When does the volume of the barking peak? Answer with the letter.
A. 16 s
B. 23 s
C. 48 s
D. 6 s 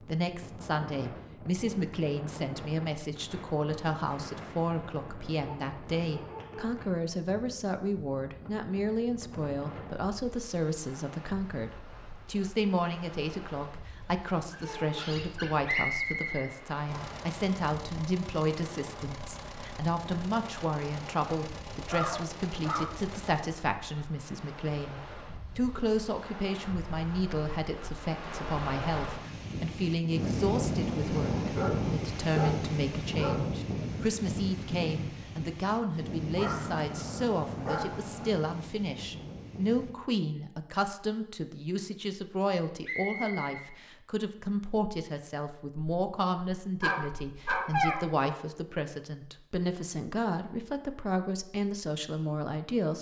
C.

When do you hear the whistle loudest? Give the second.
16 s.